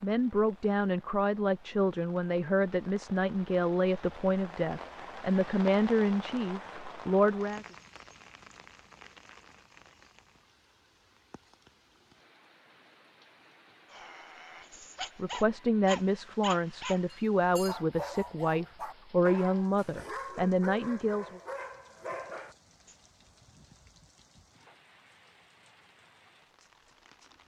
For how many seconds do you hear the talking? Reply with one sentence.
The talking can be heard for 14 seconds in total.